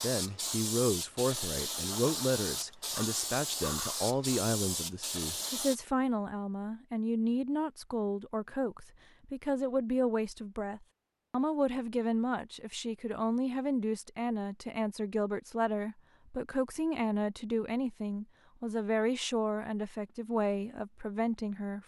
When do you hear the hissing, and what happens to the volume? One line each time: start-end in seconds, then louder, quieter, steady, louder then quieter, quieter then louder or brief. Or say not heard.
0.0-5.8 steady.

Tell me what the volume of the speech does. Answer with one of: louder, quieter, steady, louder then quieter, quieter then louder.
steady.